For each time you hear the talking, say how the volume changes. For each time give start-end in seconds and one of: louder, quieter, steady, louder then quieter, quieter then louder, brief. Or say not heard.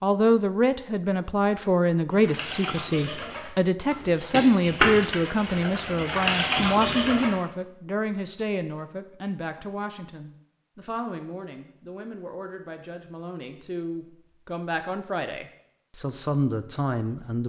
0.0-17.4 quieter then louder.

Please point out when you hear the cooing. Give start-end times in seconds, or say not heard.
2.1-7.3.